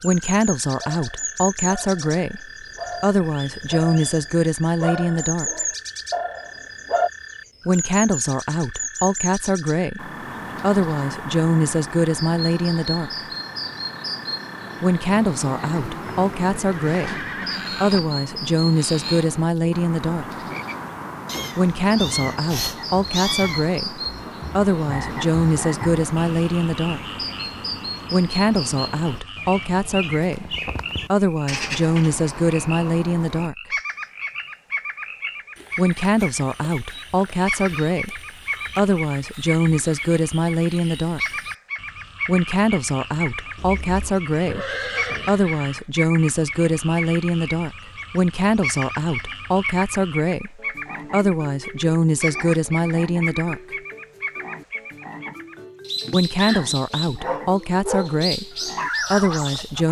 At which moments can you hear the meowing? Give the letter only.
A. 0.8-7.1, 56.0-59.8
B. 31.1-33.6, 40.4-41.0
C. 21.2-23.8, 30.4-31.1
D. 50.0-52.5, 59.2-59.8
C.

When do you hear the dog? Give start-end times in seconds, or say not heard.
0.8-7.1, 56.0-59.8.